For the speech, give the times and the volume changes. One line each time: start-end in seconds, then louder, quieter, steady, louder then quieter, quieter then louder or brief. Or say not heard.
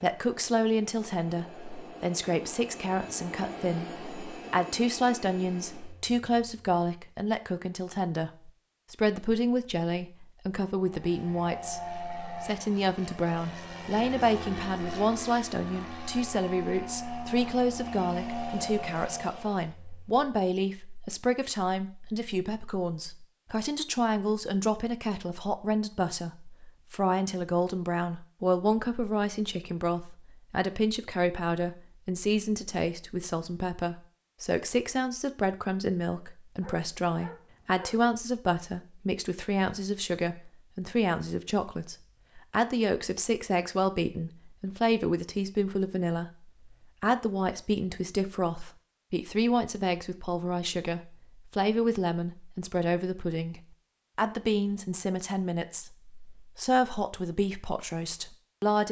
0.0-58.8 steady.